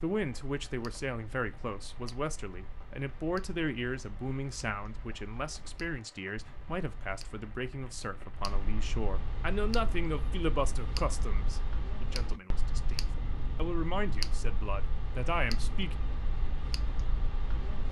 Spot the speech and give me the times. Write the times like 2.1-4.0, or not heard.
0.0-16.0.